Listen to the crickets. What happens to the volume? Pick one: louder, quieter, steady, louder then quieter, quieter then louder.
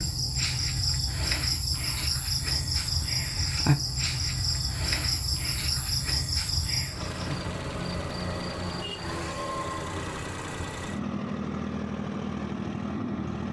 quieter.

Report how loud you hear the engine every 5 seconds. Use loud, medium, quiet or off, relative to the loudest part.
quiet, loud, loud.